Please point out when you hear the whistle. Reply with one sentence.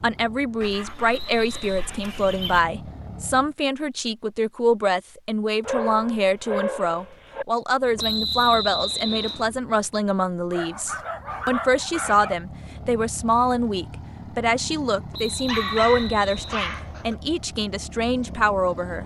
You can hear the whistle from 1.1 to 1.9 s, from 8.0 to 9.4 s and from 15.1 to 16.6 s.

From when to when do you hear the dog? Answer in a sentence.
The dog can be heard from 0.6 to 2.6 s, from 5.6 to 7.5 s, from 10.5 to 12.3 s and from 15.4 to 17.1 s.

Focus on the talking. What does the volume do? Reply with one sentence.
The volume of the talking stays about the same.